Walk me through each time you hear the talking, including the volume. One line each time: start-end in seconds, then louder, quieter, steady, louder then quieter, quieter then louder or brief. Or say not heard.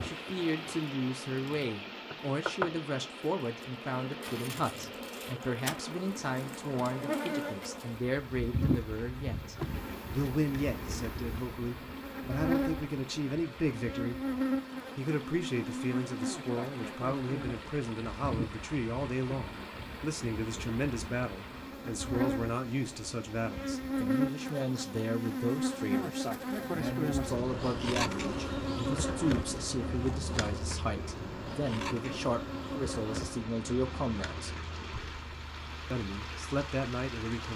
0.0-14.2 steady
14.9-34.5 steady
35.9-37.5 brief.